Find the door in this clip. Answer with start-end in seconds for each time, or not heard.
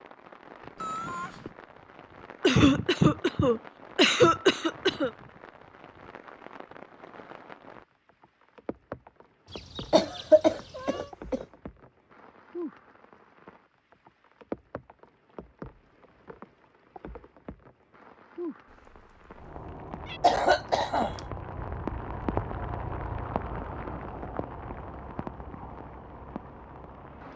not heard.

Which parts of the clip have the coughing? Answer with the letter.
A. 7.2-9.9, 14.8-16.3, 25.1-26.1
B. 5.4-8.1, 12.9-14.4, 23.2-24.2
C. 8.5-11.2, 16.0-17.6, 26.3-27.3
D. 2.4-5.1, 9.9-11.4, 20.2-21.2
D.